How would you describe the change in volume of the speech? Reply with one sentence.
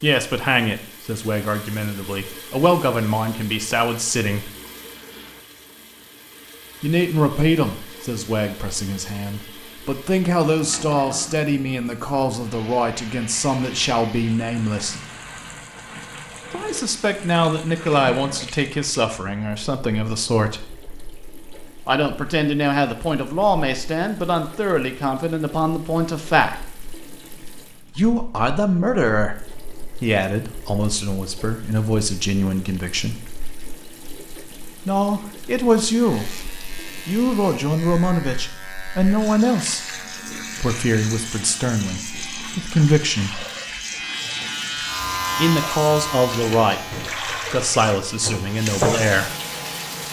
The volume of the speech stays about the same.